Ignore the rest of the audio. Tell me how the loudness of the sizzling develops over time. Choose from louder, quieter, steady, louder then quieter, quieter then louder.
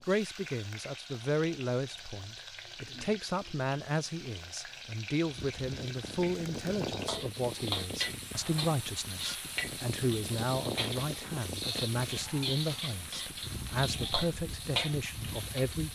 louder.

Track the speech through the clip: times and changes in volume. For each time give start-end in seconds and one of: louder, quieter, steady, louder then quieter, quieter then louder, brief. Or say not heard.
0.0-15.9 steady.